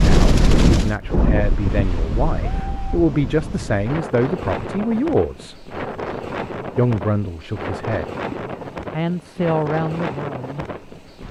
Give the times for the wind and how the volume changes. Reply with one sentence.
The wind can be heard from 0.0 to 11.2 s, getting quieter.